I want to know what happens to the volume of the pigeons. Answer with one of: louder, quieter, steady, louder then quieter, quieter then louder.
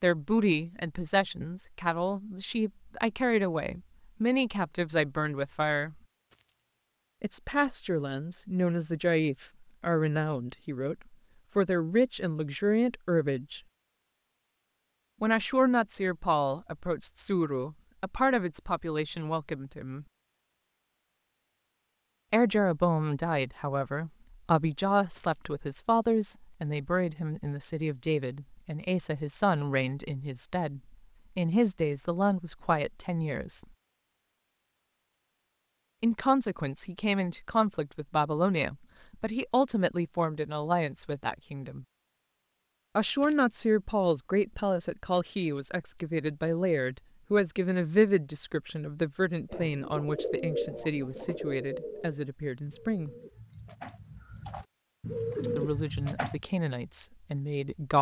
quieter then louder.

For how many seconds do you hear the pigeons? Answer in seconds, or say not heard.
7 s.